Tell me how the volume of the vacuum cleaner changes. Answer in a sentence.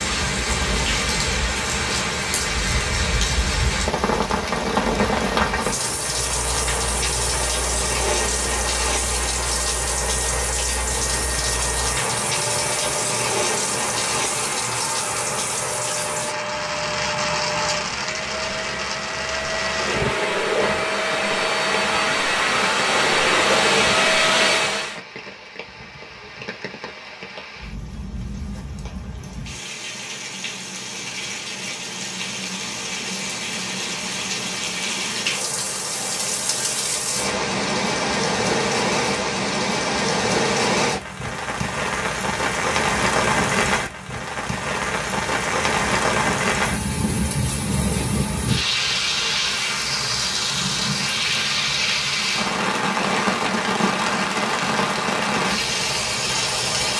The volume of the vacuum cleaner goes up.